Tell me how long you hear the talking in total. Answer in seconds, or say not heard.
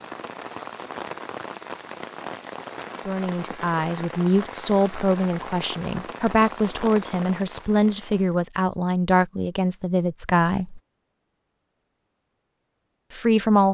8 s.